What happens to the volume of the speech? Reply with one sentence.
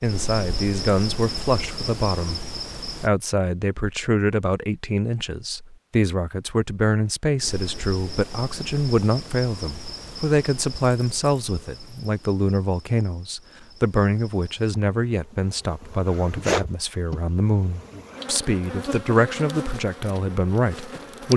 The loudness of the speech stays about the same.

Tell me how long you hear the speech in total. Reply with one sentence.
The speech can be heard for 21 seconds in total.